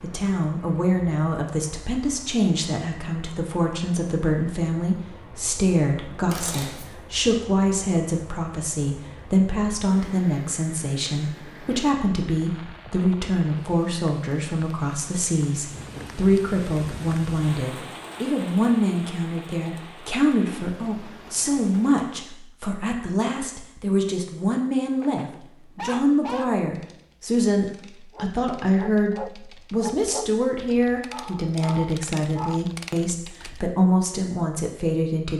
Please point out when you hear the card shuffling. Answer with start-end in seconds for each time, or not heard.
6.2-7.0.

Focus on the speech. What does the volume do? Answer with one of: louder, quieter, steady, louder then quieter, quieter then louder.
steady.